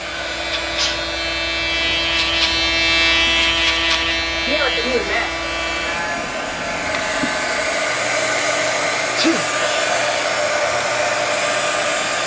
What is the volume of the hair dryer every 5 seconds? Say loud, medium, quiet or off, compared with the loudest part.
medium, loud, loud.